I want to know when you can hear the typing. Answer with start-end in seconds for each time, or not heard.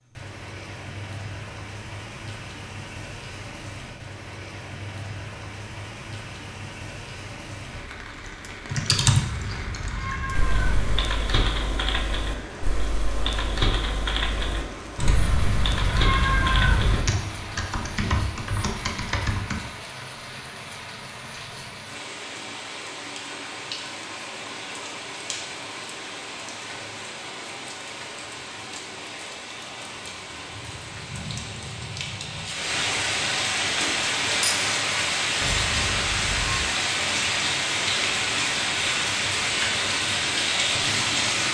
8.7-19.6.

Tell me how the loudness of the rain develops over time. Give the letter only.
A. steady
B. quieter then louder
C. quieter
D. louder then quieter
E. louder
E.